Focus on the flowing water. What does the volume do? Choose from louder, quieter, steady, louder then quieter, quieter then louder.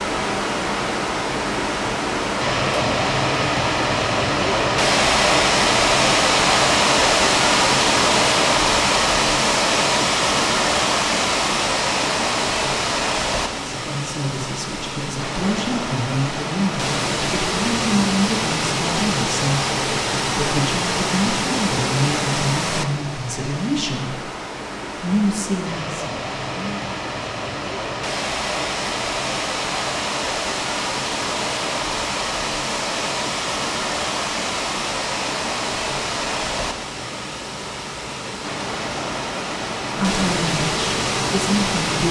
quieter.